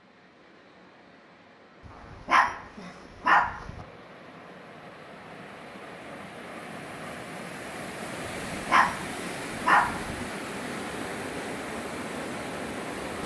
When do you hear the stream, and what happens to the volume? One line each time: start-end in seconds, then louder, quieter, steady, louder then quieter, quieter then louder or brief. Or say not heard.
0.0-13.2 louder.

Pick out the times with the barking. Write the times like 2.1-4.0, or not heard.
1.9-3.9, 8.5-10.2.